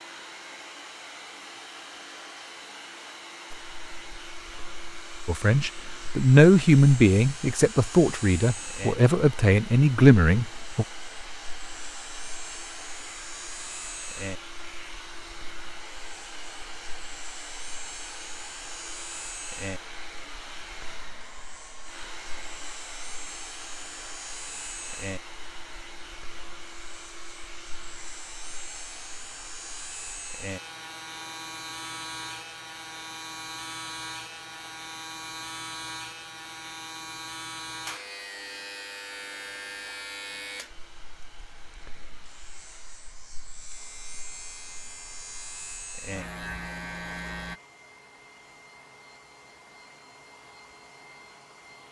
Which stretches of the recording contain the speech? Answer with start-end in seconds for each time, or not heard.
5.2-10.8.